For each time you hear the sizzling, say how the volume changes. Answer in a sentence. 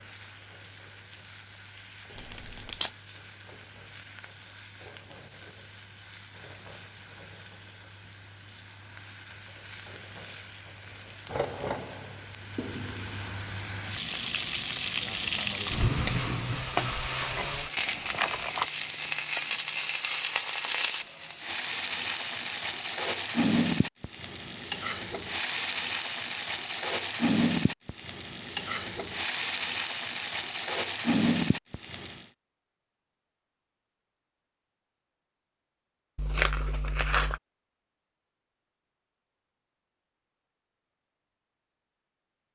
The sizzling can be heard from 0.0 to 32.2 s, getting louder.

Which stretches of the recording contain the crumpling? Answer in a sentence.
The crumpling can be heard from 2.1 to 2.9 s, from 17.8 to 18.6 s and from 36.1 to 37.4 s.